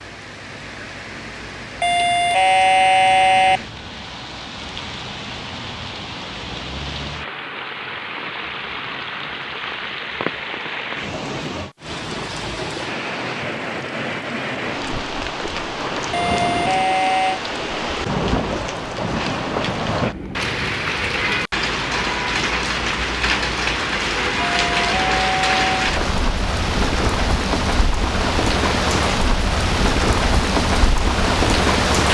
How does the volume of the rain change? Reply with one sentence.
The volume of the rain goes up.